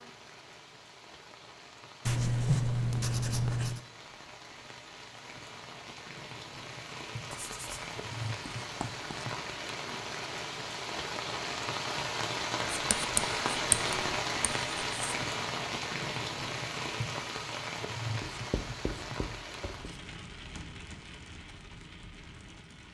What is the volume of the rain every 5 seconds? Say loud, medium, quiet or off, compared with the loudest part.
quiet, medium, loud, loud, quiet.